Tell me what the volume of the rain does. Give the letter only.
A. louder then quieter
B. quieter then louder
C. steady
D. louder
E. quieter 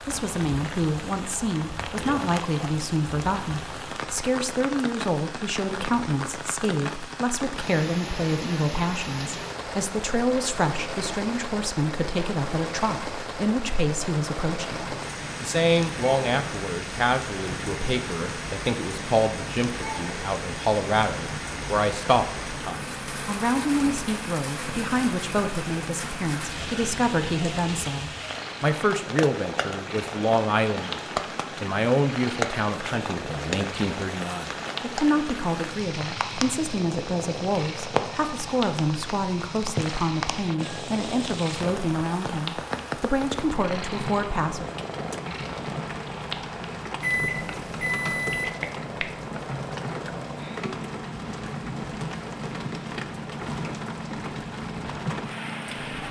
C.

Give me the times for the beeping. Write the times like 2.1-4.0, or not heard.
47.0-48.5.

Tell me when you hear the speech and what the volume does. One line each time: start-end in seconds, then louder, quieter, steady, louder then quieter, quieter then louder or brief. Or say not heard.
0.1-31.0 steady
31.6-44.6 steady.